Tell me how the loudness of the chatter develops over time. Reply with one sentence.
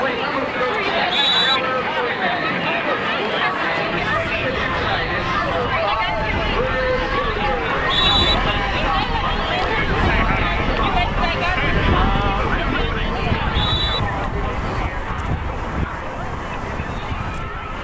The loudness of the chatter goes down.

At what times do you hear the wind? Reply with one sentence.
The wind can be heard from 0.0 to 17.8 s.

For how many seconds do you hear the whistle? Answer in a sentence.
The whistle can be heard for 2 seconds in total.